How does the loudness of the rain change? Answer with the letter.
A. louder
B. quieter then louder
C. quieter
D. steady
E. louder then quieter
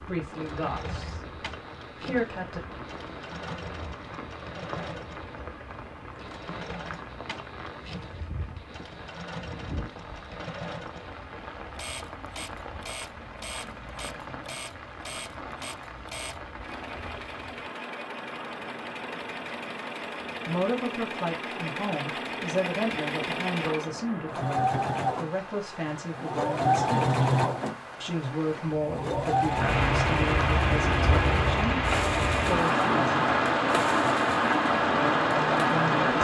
A.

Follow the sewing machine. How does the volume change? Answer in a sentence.
The loudness of the sewing machine goes up.